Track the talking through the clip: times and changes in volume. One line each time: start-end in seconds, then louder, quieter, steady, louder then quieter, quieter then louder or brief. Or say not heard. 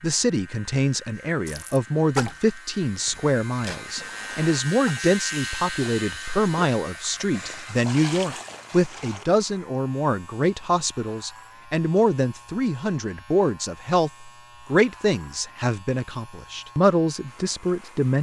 0.0-18.1 steady.